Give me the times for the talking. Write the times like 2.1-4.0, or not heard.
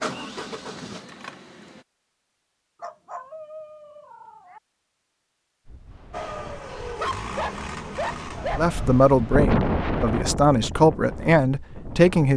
8.6-12.3.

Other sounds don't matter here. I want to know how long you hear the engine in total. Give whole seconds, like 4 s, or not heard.
5 s.